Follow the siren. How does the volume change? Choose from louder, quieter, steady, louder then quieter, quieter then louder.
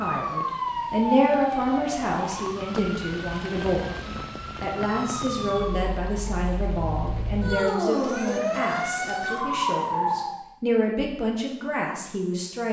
quieter then louder.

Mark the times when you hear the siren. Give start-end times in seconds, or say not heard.
0.0-10.4.